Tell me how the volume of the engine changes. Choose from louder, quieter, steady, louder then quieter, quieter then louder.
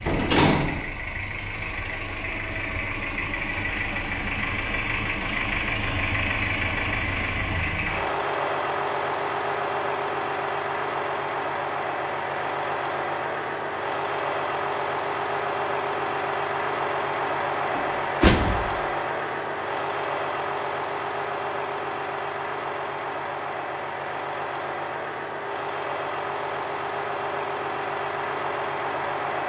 steady.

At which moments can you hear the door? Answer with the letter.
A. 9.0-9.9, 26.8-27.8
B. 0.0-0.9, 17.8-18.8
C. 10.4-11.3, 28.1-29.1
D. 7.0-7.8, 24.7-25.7
B.